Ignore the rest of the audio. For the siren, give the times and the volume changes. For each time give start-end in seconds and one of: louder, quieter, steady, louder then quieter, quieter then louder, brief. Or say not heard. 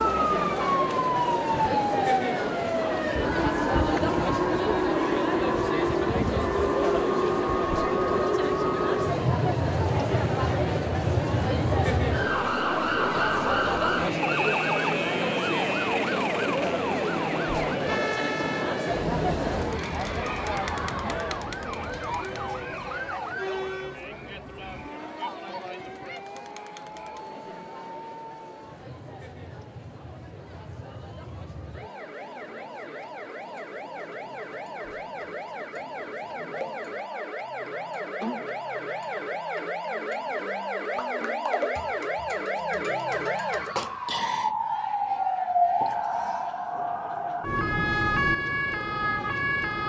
0.0-49.8 quieter then louder.